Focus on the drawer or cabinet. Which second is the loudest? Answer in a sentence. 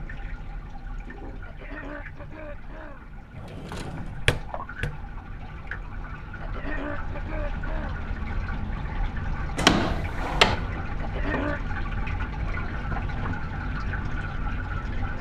The volume of the drawer or cabinet peaks at 10 seconds.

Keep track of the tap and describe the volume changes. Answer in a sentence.
The loudness of the tap goes up.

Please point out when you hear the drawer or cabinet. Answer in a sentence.
The drawer or cabinet can be heard from 3.4 to 5.0 s and from 9.6 to 10.7 s.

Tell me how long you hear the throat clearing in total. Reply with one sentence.
The throat clearing can be heard for 4 seconds in total.